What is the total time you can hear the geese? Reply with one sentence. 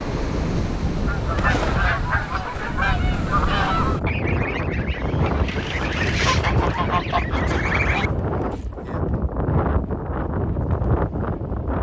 You can hear the geese for 7 seconds altogether.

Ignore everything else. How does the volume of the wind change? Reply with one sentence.
The volume of the wind stays about the same.